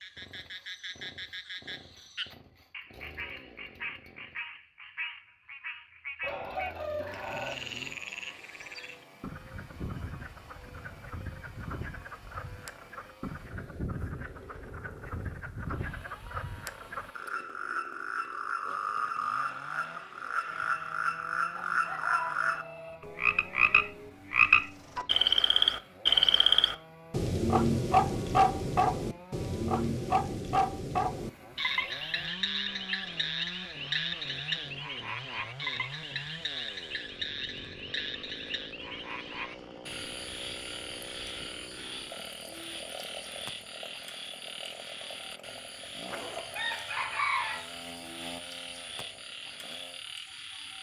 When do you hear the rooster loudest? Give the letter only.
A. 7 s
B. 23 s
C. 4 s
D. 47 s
D.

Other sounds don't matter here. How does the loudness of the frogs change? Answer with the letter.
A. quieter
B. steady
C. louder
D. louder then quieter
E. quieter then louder
D.